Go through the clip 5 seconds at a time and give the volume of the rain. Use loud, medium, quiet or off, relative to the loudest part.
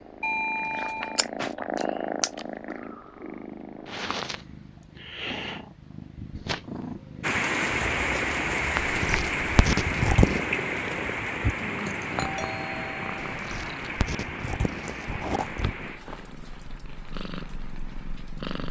off, loud, medium, quiet.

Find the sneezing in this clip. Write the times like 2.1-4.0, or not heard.
not heard.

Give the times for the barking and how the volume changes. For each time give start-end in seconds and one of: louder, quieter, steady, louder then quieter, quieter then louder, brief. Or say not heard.
not heard.